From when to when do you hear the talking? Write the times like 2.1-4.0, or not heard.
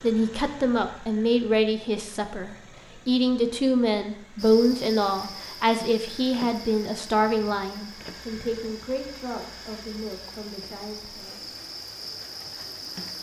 0.0-11.5.